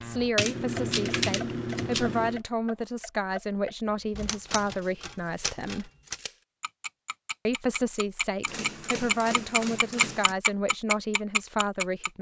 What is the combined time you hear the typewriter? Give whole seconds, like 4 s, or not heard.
6 s.